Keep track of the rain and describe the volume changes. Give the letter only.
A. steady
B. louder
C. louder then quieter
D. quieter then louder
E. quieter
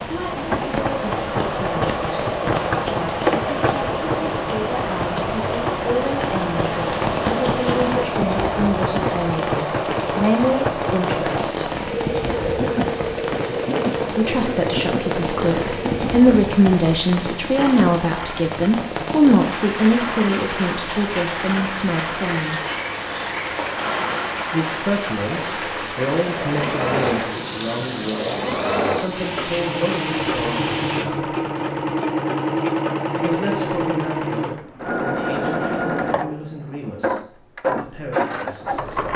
A.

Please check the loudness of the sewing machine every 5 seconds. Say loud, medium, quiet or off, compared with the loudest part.
loud, loud, loud, medium, medium, loud, loud, loud.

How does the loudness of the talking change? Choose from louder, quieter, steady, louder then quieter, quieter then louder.
louder then quieter.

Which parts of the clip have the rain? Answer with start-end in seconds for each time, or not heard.
0.0-31.1.